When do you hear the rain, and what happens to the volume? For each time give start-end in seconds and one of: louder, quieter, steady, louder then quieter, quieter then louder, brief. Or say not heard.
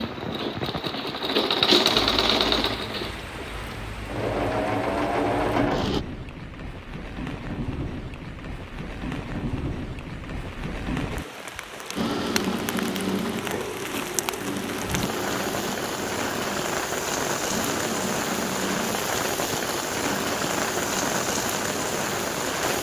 0.0-22.7 louder.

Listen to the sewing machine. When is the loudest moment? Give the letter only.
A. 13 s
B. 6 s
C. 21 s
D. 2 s
D.